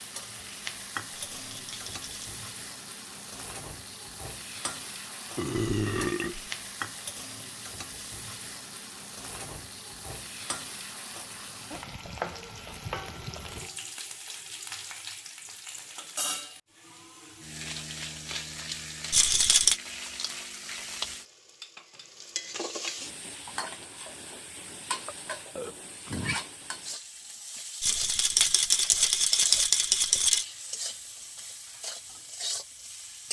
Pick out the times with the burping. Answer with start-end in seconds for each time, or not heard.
5.3-6.5, 25.1-26.4.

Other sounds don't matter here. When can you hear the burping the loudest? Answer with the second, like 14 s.
6 s.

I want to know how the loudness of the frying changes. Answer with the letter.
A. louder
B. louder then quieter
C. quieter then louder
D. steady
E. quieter
D.